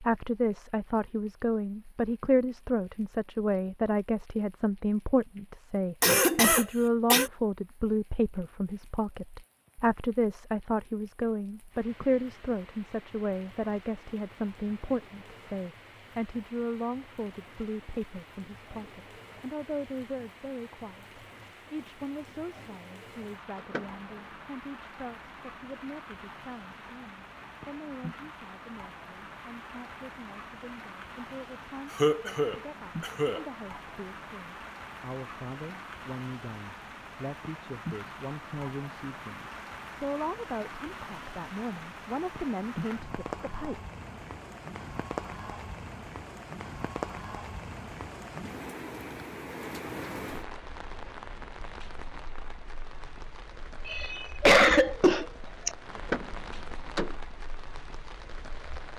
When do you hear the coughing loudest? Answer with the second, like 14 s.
55 s.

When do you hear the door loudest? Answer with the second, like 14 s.
56 s.